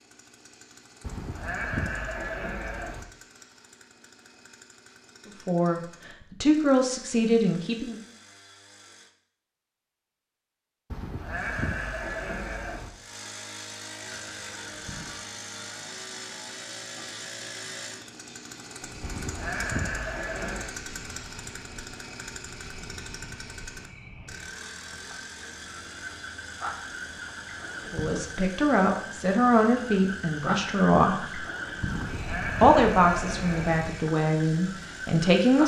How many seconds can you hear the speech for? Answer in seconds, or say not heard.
9 s.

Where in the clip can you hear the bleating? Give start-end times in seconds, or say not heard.
1.0-3.0, 10.9-12.9, 19.0-20.7, 31.9-33.9.